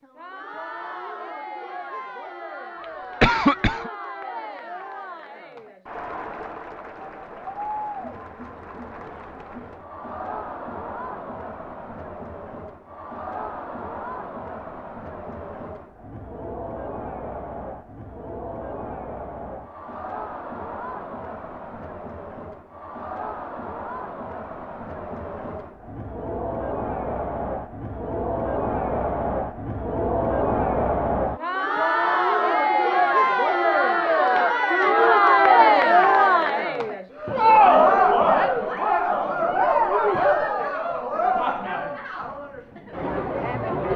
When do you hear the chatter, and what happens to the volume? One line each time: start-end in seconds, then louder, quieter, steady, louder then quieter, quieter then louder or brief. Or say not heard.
0.0-43.9 louder.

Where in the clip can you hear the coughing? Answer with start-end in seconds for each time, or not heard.
2.8-3.9.